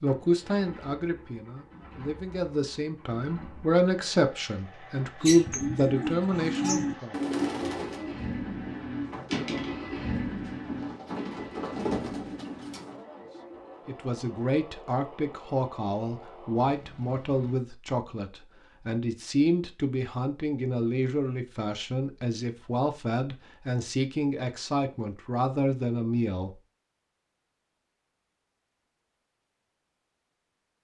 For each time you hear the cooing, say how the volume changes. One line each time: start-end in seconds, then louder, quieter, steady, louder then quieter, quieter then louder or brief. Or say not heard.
5.2-13.0 quieter then louder.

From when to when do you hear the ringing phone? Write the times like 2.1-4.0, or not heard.
not heard.